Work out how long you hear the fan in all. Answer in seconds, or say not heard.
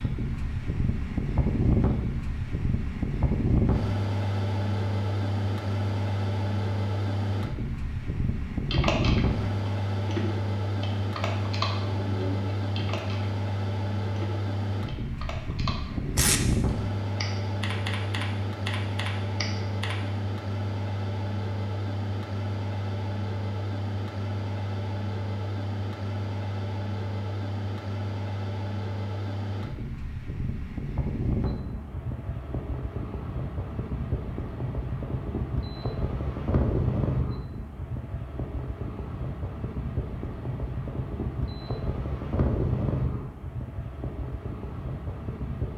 46 s.